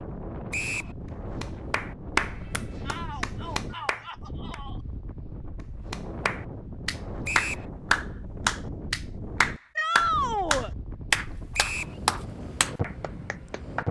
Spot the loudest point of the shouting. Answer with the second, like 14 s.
10 s.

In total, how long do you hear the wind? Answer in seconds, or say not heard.
14 s.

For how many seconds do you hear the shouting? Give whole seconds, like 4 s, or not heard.
3 s.